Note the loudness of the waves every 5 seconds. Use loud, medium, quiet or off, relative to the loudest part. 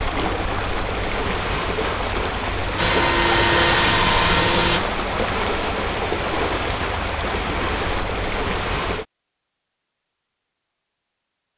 loud, loud, off.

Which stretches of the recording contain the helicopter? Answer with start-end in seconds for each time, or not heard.
2.8-4.8.